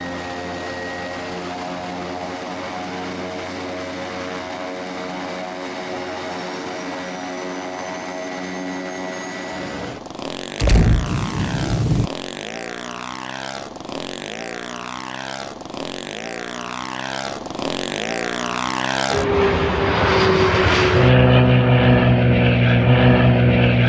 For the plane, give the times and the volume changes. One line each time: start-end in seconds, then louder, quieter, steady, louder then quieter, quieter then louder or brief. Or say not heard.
0.0-23.8 louder.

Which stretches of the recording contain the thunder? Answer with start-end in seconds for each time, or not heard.
10.6-12.1.